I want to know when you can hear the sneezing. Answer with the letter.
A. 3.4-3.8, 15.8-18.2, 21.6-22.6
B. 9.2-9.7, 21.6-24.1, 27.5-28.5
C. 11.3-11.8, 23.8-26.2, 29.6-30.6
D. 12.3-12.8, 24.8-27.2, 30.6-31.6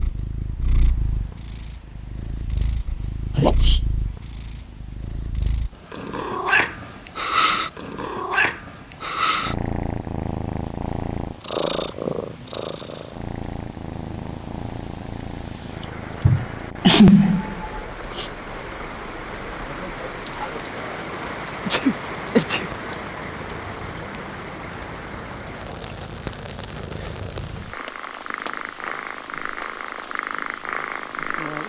A.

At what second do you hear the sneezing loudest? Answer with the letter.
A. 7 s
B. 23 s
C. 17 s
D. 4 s
C.